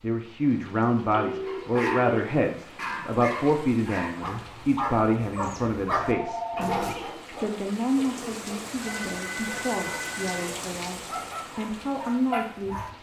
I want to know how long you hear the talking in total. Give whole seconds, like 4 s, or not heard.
13 s.